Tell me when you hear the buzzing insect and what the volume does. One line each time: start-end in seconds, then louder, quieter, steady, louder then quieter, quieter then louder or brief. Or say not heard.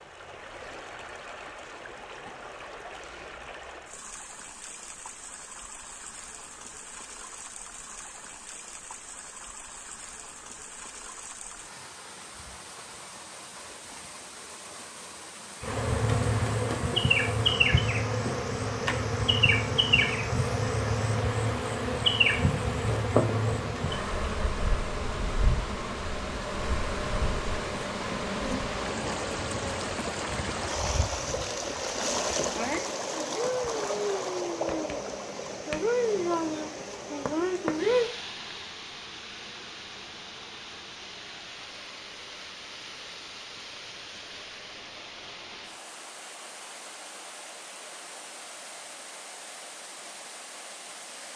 15.6-38.1 quieter then louder.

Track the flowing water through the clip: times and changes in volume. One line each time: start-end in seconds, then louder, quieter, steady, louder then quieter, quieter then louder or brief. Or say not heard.
0.0-51.3 louder then quieter.